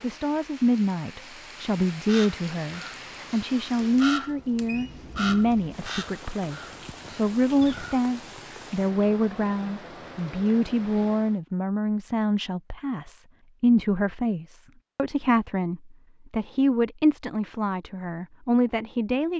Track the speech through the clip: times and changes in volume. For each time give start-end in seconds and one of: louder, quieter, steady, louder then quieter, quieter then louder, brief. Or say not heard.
0.0-19.3 steady.